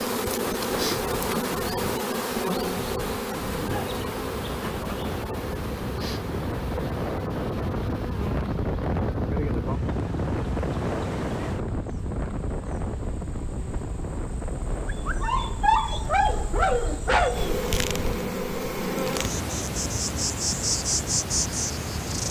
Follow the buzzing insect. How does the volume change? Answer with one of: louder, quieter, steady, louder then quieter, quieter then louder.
quieter then louder.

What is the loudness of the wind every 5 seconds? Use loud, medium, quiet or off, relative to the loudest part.
medium, loud, loud, medium, off.